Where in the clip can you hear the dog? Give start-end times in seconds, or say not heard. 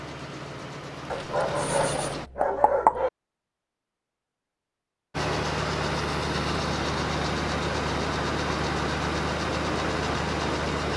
1.1-3.1.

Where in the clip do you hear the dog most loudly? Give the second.
3 s.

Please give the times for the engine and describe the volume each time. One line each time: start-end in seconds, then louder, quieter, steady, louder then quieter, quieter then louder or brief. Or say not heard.
0.0-2.3 brief
5.1-10.9 steady.